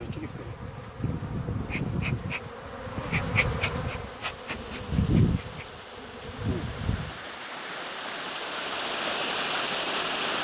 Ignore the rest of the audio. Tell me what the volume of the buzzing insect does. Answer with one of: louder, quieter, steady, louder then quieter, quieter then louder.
louder then quieter.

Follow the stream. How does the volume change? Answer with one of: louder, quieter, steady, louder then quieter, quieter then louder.
louder.